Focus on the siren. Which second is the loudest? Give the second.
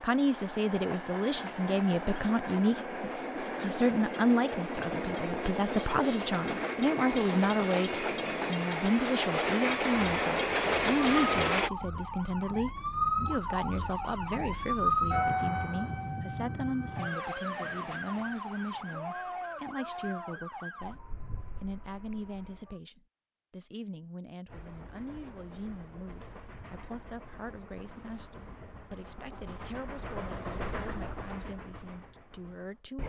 15 s.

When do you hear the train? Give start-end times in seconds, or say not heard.
0.0-11.7, 24.4-33.0.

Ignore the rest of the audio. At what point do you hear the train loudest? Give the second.
11 s.